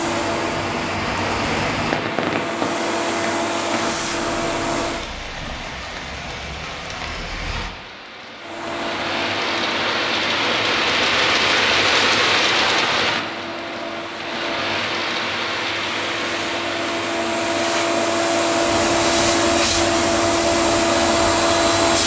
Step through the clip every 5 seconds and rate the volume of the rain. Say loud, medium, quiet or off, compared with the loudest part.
medium, medium, loud, medium, quiet.